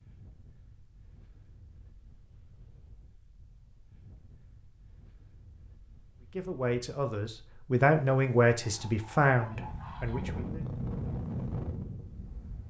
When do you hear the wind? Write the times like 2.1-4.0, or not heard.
0.0-12.6.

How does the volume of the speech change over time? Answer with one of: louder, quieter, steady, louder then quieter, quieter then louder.
louder then quieter.